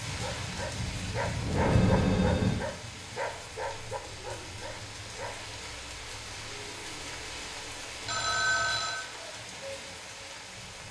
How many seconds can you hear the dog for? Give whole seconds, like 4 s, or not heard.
5 s.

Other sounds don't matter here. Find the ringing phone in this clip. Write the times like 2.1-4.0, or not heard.
1.4-2.6, 8.1-9.1.